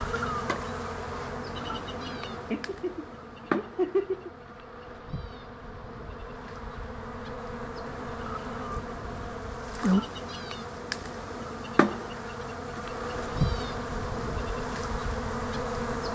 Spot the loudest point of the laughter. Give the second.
4 s.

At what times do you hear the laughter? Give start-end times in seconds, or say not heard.
2.0-4.3.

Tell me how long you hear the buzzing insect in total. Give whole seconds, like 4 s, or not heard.
16 s.